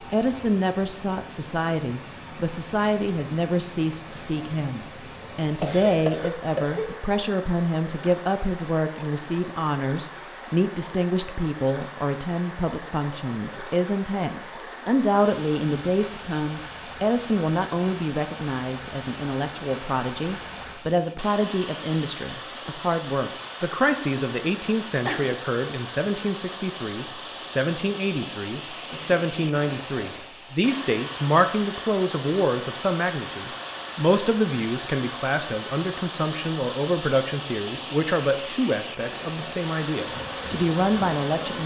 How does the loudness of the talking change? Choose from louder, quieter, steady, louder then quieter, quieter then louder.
steady.